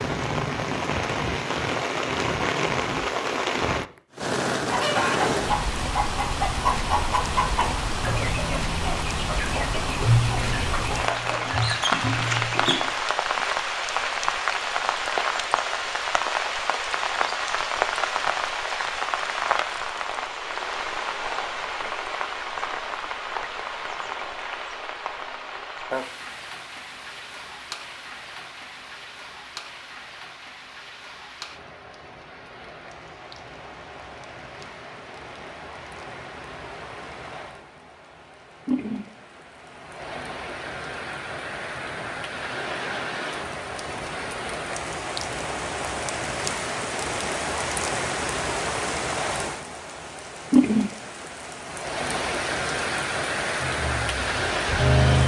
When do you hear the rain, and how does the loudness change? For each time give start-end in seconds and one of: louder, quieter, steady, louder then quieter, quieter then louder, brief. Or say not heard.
0.0-55.2 quieter then louder.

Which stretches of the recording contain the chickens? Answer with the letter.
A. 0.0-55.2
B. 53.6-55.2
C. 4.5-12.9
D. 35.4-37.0
C.